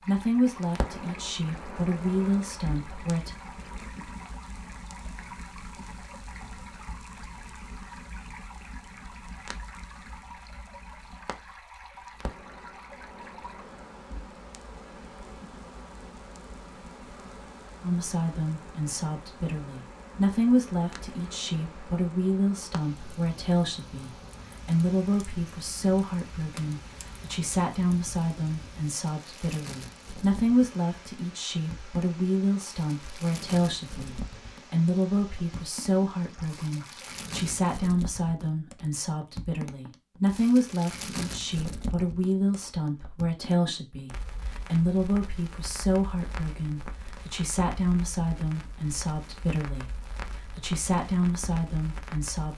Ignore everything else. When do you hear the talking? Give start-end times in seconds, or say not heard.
0.0-3.4, 17.8-52.5.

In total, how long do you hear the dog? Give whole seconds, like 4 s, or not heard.
not heard.